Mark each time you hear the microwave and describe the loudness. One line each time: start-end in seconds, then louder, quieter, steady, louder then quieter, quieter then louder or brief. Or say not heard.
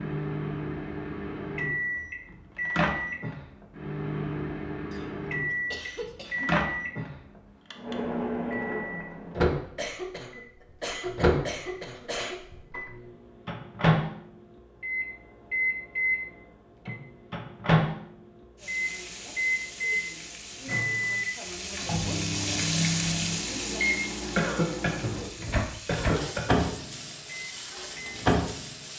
0.0-28.7 steady.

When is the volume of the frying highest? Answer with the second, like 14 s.
23 s.